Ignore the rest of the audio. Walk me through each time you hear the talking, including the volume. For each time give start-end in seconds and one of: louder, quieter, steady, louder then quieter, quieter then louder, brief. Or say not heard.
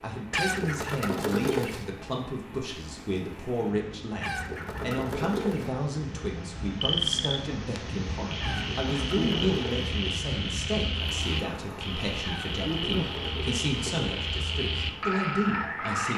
0.0-16.1 steady.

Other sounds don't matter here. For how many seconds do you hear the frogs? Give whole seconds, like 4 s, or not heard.
9 s.